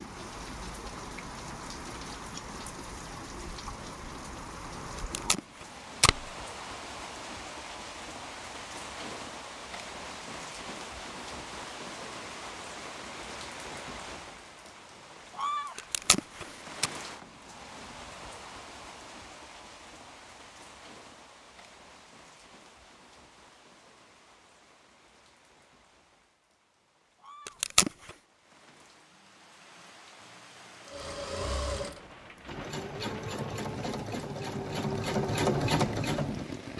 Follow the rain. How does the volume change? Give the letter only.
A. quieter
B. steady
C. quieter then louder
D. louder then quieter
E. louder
C.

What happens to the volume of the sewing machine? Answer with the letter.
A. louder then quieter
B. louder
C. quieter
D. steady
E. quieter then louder
B.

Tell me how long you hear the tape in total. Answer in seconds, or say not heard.
3 s.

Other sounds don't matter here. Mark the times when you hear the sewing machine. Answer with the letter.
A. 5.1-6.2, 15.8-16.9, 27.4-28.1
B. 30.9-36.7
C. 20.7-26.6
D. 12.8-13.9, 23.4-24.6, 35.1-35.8
B.